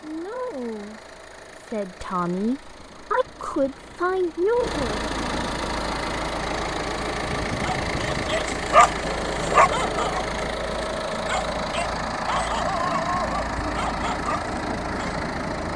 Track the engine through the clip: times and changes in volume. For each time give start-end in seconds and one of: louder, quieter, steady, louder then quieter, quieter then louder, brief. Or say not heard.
0.0-15.7 louder.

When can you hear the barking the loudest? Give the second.
9 s.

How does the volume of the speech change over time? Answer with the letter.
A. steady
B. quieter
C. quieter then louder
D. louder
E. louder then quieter
D.